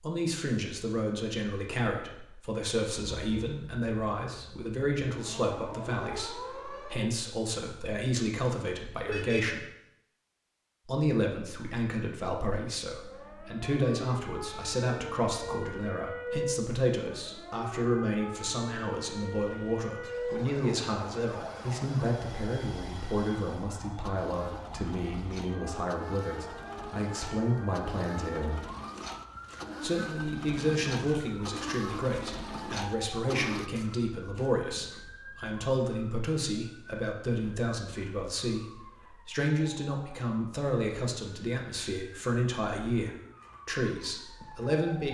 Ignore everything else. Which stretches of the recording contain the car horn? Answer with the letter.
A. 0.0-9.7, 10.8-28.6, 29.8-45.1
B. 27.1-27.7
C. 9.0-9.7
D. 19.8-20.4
C.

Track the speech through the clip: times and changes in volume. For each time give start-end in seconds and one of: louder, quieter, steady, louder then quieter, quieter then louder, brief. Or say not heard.
0.0-9.7 steady
10.8-28.6 steady
29.8-45.1 steady.